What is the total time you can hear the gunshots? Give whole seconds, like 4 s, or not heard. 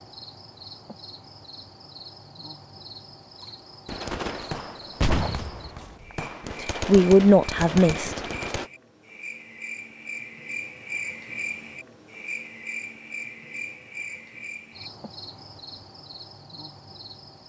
5 s.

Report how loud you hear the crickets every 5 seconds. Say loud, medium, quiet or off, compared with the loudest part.
medium, medium, loud, medium.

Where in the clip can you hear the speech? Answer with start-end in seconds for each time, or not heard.
6.6-8.2.